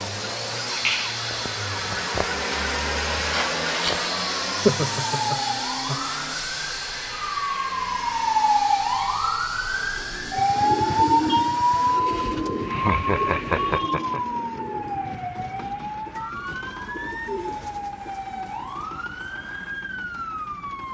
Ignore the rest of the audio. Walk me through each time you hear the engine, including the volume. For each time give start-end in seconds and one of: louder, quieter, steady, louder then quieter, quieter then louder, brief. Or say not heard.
0.0-20.8 quieter.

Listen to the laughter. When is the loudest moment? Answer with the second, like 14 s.
5 s.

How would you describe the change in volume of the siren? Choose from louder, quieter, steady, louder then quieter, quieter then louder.
louder then quieter.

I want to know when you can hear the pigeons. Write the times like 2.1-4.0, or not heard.
9.9-18.9.